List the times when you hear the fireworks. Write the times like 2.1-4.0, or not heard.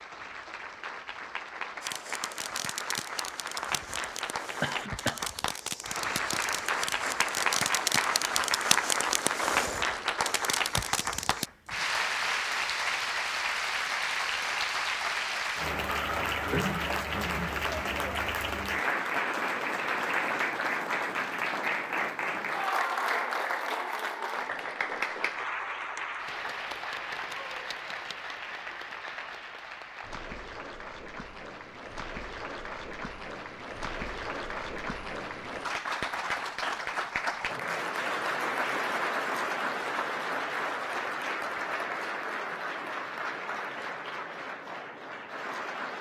1.8-11.5.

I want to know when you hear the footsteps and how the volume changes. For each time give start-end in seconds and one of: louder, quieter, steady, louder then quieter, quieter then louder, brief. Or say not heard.
not heard.